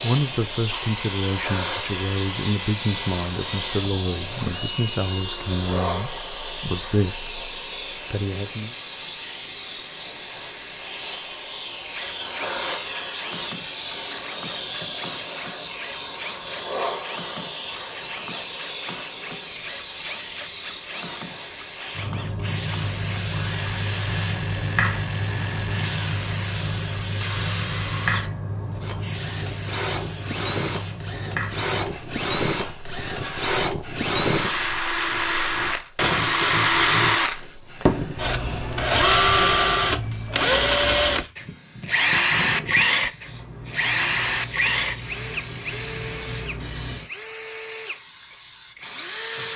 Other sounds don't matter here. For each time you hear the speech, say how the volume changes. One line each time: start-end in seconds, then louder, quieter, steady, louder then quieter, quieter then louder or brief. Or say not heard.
0.0-8.8 steady.